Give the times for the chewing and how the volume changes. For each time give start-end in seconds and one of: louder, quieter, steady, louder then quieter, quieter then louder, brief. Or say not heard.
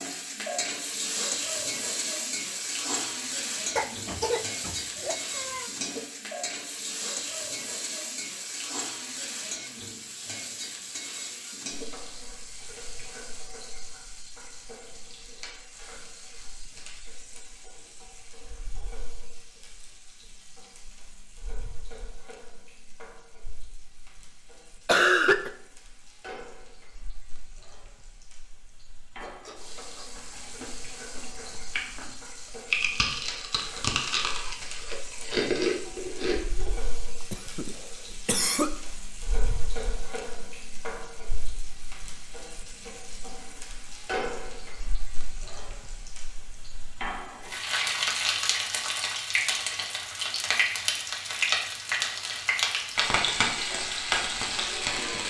29.2-36.7 louder.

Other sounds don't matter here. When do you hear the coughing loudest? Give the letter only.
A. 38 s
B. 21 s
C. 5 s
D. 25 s
D.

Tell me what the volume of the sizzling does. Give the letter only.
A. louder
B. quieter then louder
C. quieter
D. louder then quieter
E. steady
B.